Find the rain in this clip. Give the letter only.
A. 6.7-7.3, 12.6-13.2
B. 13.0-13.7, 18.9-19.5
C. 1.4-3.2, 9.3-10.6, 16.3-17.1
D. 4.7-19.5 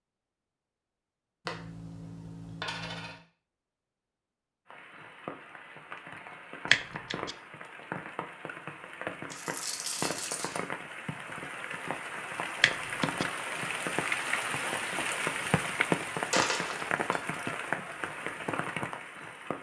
D.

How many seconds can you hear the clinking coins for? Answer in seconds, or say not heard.
4 s.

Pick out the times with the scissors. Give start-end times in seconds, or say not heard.
6.7-7.3, 12.6-13.2.